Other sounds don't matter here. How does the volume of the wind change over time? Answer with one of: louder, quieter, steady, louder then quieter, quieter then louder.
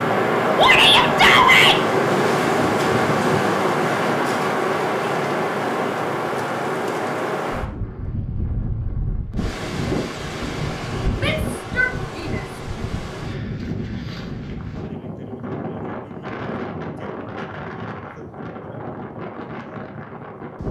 quieter.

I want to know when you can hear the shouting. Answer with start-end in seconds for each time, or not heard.
0.6-1.8, 11.2-12.8.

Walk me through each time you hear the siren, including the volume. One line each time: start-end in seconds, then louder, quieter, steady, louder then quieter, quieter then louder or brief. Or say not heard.
not heard.